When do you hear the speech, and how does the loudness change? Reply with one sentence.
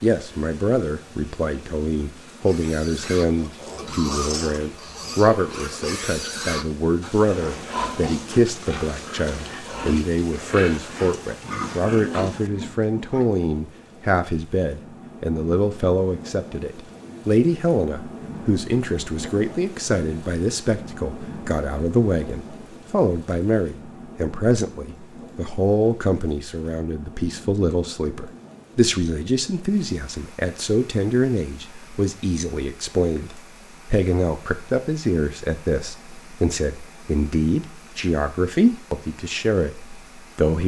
You can hear the speech from 0.0 to 40.6 s, at a steady volume.